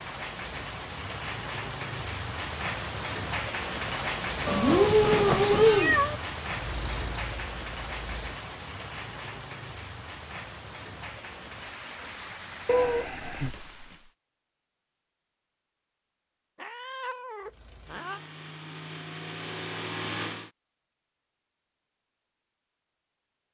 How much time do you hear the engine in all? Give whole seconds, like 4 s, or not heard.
5 s.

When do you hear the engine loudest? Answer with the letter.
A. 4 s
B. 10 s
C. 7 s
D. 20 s
D.